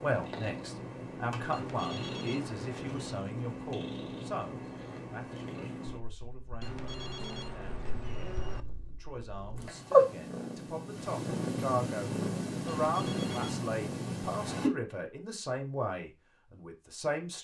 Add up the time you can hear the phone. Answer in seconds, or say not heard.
5 s.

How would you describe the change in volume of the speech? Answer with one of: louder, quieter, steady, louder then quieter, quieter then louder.
quieter then louder.